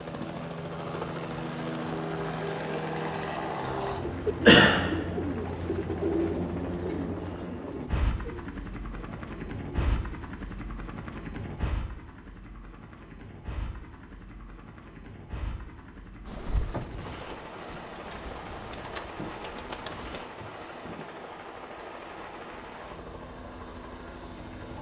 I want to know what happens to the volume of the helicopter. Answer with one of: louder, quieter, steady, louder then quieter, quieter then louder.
quieter.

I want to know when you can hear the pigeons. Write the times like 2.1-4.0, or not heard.
4.0-9.9, 16.2-21.1.